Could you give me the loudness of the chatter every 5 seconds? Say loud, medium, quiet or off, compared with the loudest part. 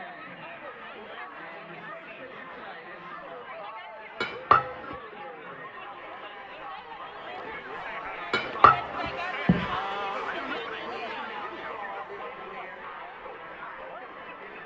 medium, loud, loud.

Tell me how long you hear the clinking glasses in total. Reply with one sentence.
You can hear the clinking glasses for 2 seconds altogether.